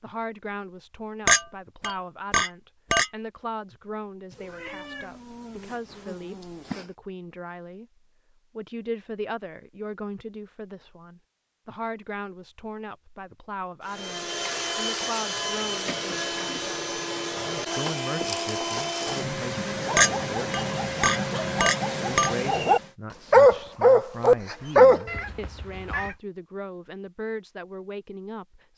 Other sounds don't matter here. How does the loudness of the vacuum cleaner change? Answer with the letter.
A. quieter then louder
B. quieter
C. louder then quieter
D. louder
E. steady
E.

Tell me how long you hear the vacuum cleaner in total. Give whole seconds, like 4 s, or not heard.
9 s.